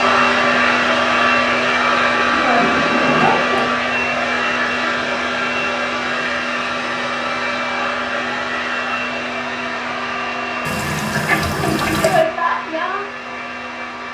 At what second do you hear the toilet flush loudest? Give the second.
12 s.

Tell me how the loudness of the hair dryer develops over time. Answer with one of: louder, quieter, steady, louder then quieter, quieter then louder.
quieter.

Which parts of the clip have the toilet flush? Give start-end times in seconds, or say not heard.
2.1-3.7, 10.7-12.2.